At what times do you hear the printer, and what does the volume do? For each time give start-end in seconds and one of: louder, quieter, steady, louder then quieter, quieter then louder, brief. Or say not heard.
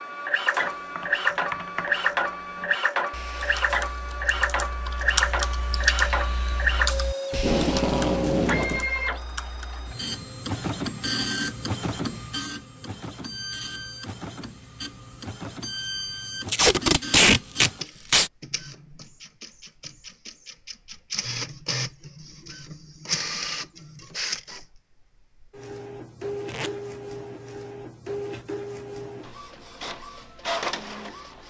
0.0-31.4 quieter.